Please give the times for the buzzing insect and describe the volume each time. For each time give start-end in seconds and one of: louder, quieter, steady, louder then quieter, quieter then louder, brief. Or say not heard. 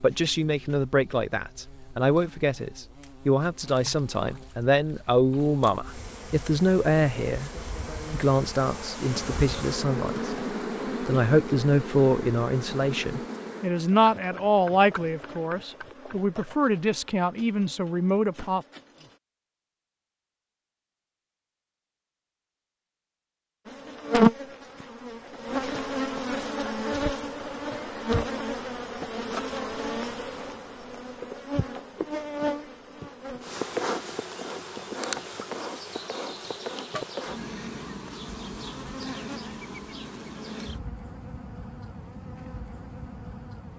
0.0-19.2 louder then quieter
23.6-43.7 quieter.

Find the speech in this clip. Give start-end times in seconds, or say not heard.
0.0-18.6.